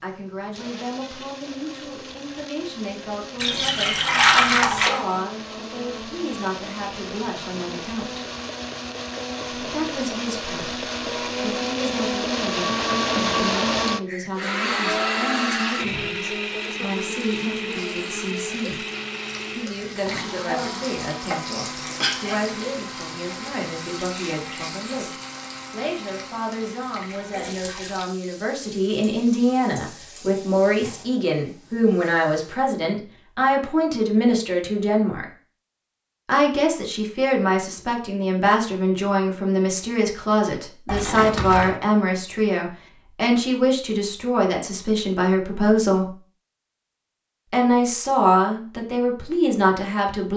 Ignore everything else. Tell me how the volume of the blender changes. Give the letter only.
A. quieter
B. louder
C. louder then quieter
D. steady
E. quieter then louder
C.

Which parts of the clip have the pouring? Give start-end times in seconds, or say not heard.
3.4-5.0, 27.1-28.1, 40.9-41.8.